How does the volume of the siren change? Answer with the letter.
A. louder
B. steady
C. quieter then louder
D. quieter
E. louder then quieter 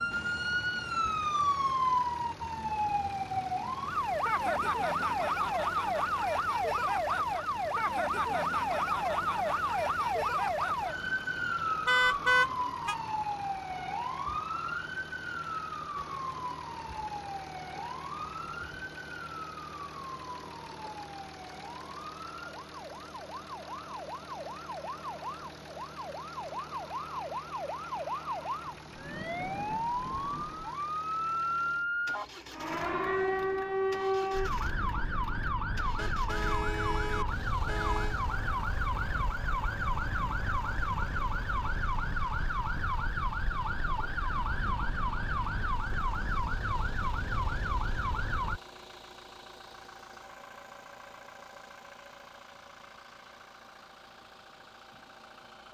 C.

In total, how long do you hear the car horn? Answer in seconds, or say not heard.
3 s.